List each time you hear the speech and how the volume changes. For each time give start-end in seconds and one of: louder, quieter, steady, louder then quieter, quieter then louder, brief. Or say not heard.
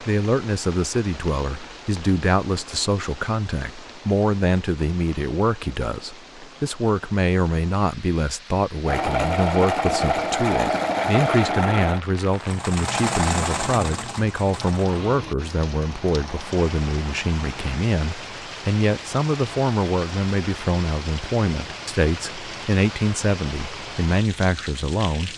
0.0-25.3 steady.